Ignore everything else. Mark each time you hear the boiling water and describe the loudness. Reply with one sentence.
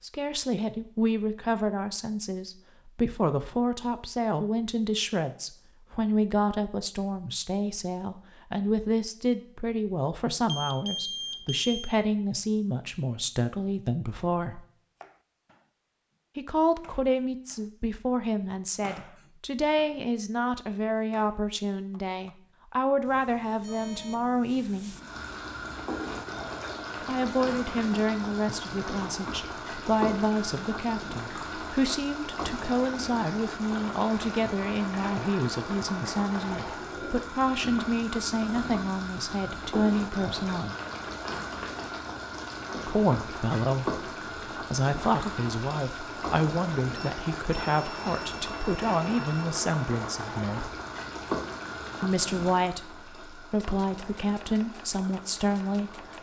The boiling water can be heard from 24.9 to 56.1 s, at a steady volume.